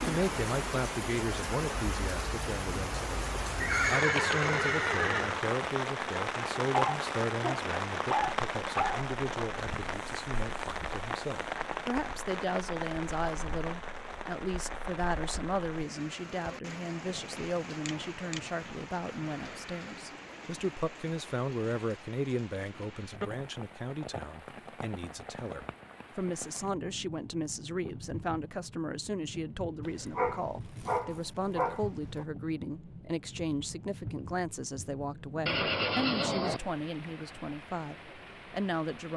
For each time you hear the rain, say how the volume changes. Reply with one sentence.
You can hear the rain from 0.0 to 39.1 s, getting quieter.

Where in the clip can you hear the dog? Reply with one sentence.
You can hear the dog from 6.7 to 9.1 s and from 29.9 to 32.2 s.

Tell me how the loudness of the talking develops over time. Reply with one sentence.
The volume of the talking stays about the same.